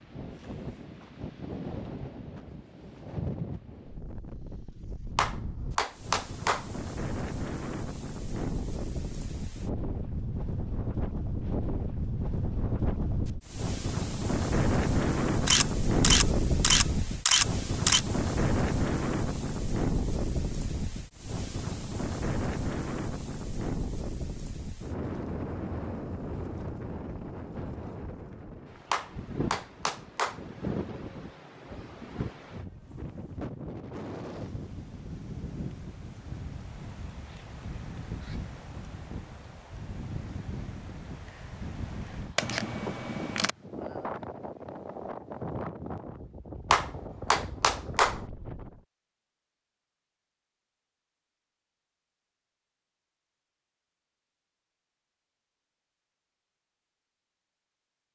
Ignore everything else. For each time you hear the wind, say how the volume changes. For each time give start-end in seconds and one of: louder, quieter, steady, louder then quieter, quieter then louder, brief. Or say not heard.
0.0-48.9 louder then quieter.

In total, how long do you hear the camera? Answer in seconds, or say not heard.
4 s.